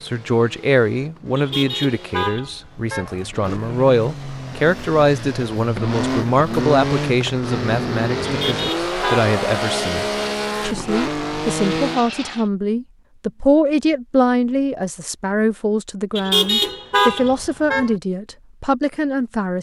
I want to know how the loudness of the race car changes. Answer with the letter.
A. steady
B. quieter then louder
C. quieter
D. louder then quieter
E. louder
E.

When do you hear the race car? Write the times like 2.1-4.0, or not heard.
0.0-12.4.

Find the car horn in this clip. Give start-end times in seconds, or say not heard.
1.4-3.1, 8.3-9.3, 16.1-17.9.